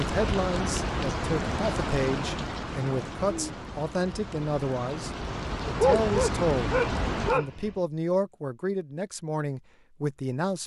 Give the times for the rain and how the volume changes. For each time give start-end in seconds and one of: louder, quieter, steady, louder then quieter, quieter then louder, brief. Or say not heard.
0.0-7.4 quieter then louder.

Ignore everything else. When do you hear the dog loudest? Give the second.
6 s.